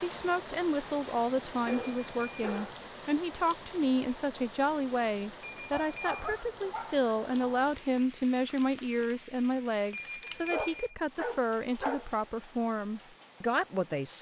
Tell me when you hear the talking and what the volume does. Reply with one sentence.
The talking can be heard from 0.0 to 14.1 s, at a steady volume.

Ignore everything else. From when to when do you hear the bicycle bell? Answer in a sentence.
The bicycle bell can be heard from 1.6 to 2.5 s, from 5.4 to 6.3 s and from 9.9 to 10.9 s.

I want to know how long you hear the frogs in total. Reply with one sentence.
The frogs can't be heard in this clip.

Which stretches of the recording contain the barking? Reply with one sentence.
The barking can be heard from 1.6 to 2.8 s, from 5.7 to 7.5 s and from 10.2 to 12.1 s.